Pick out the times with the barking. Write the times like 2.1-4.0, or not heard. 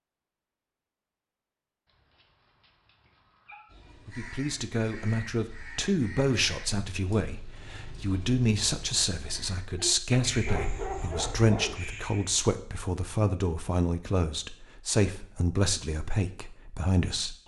1.9-3.7, 10.2-11.8.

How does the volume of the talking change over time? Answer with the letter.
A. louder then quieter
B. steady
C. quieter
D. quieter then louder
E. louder
B.